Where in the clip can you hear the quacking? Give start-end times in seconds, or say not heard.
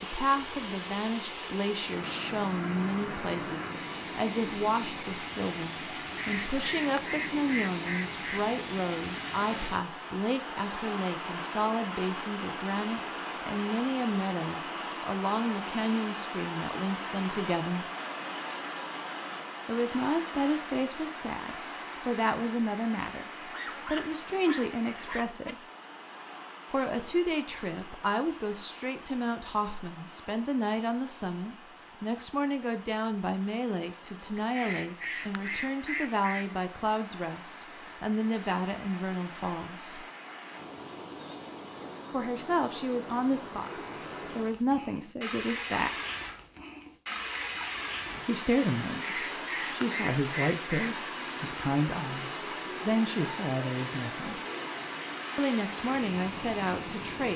6.2-8.4, 34.4-36.6, 49.0-50.9.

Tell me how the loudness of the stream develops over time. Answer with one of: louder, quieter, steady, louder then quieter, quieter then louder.
quieter then louder.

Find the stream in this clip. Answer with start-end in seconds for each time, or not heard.
0.0-57.3.